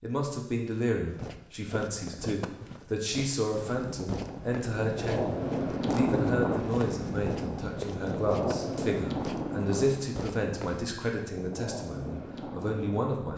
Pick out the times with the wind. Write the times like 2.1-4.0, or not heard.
3.5-13.3.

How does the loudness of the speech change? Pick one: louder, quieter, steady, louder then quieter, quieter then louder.
steady.